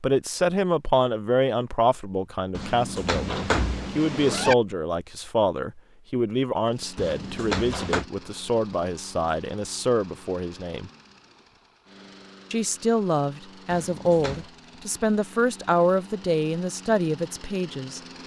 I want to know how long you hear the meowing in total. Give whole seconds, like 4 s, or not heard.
4 s.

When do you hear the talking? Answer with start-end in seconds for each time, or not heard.
0.0-10.9, 12.5-18.0.